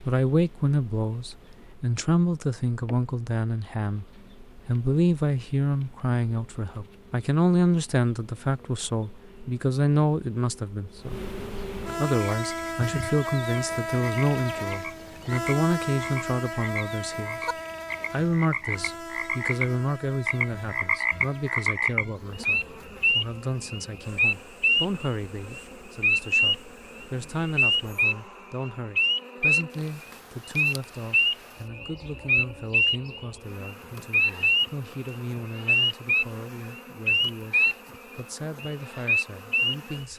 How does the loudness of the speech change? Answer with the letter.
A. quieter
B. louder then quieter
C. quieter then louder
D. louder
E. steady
A.